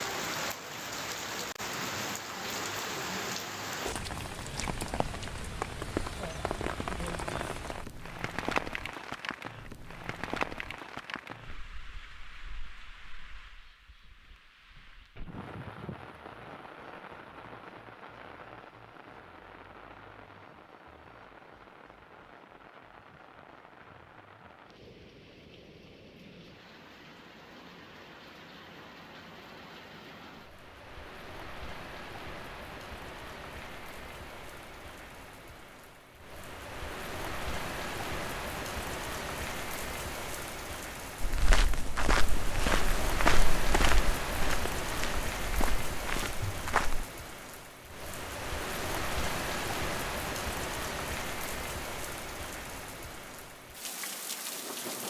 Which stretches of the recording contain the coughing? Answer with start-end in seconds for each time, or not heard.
not heard.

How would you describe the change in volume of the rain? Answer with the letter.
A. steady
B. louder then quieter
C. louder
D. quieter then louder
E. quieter
D.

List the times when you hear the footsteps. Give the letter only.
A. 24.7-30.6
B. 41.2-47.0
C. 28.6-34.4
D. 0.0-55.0
B.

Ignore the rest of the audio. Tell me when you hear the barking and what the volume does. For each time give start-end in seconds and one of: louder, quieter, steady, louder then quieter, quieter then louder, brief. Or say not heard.
not heard.